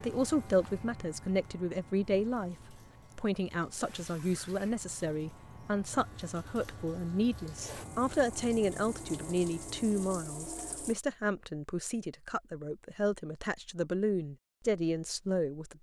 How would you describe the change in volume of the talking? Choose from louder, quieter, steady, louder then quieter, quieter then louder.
steady.